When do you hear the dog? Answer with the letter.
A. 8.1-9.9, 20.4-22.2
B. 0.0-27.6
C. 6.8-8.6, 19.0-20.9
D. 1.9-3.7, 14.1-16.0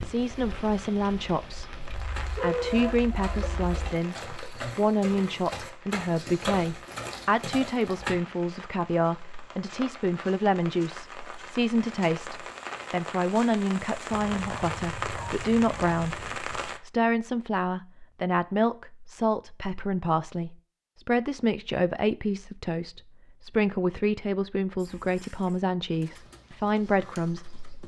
D.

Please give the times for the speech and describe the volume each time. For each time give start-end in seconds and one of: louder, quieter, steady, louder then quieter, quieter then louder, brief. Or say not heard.
0.0-27.6 steady.